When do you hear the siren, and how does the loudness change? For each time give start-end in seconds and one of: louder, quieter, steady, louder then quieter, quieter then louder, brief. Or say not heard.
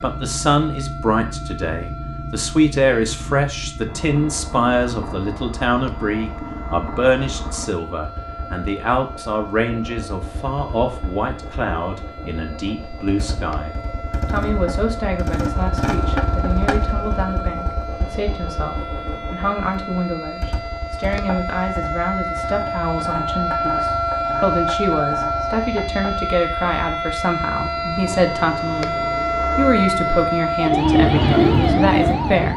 0.0-32.5 louder.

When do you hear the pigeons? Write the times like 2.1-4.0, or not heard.
30.6-32.5.